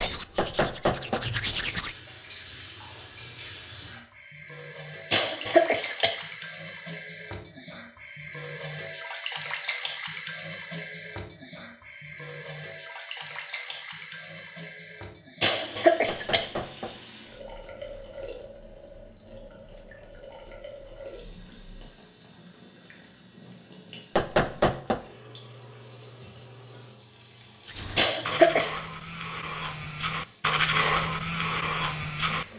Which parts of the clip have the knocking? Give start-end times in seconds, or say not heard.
0.3-1.2, 16.1-16.9, 24.1-25.0.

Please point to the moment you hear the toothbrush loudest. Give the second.
31 s.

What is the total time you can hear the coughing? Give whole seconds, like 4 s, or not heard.
3 s.